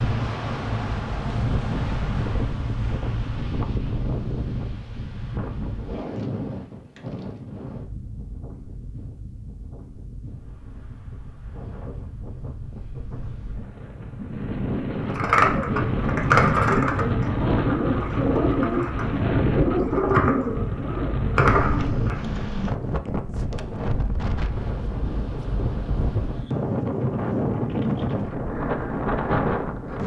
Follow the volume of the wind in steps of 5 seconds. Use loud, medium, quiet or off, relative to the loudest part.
loud, medium, medium, loud, loud, loud.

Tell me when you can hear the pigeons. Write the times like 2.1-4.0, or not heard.
15.1-22.2.